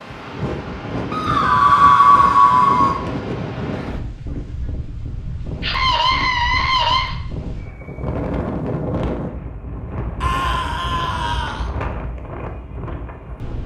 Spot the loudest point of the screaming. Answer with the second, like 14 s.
2 s.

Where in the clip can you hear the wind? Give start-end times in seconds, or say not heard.
0.0-13.6.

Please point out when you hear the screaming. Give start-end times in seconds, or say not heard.
1.1-3.0, 5.6-7.2, 10.2-11.7.